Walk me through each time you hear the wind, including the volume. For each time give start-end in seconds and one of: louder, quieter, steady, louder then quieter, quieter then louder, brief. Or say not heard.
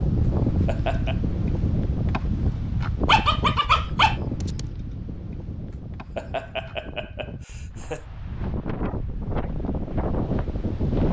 0.0-11.0 quieter then louder.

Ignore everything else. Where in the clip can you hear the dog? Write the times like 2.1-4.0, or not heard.
3.0-4.7.